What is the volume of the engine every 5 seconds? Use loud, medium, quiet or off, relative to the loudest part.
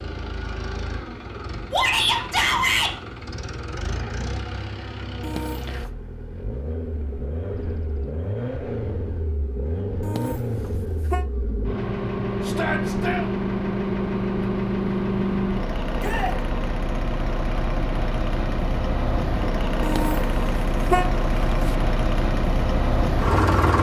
medium, medium, loud, loud, loud.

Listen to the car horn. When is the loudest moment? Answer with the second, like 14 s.
21 s.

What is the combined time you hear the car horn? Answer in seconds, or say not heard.
4 s.